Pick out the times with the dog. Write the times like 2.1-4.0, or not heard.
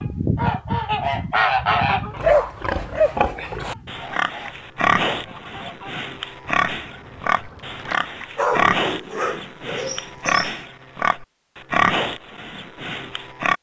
2.2-3.5, 8.3-10.6.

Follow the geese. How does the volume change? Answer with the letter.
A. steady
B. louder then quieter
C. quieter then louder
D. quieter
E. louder
D.